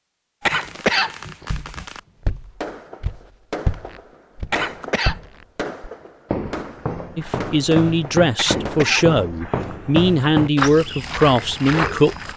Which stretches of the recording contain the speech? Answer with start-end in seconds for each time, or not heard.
7.2-12.2.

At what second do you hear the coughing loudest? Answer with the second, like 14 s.
1 s.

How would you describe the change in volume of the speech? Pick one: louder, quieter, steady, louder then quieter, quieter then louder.
steady.